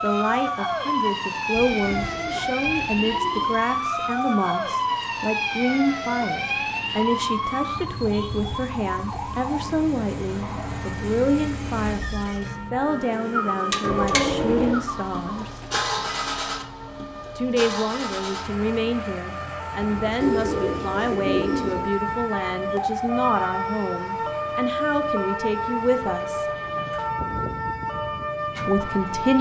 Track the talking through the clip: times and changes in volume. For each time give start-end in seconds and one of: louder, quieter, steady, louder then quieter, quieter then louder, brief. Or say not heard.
0.0-15.5 steady
17.4-26.4 steady
28.6-29.3 brief.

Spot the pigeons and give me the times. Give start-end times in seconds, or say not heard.
1.5-3.7, 13.1-15.8, 20.2-21.9.